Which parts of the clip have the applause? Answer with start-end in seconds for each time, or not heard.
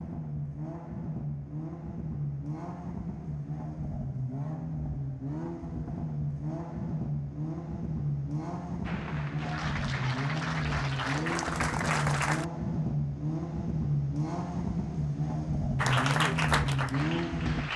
8.8-12.4, 15.8-17.7.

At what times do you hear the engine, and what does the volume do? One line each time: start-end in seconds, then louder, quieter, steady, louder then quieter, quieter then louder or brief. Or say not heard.
0.0-17.7 louder.